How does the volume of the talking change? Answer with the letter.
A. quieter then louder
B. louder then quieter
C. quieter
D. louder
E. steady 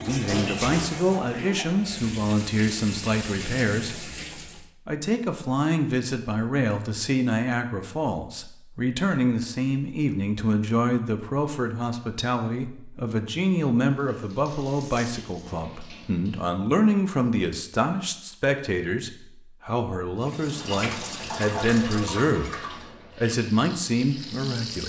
E.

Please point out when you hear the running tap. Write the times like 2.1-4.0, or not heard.
0.0-4.7, 13.8-16.6, 20.2-24.8.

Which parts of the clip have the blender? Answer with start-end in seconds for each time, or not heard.
not heard.